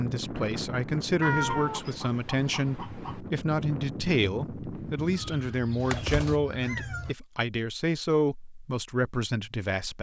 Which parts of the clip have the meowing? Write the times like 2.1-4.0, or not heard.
1.2-3.2, 5.1-7.2.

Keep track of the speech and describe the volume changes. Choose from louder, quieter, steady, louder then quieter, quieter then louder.
steady.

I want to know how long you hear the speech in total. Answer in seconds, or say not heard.
10 s.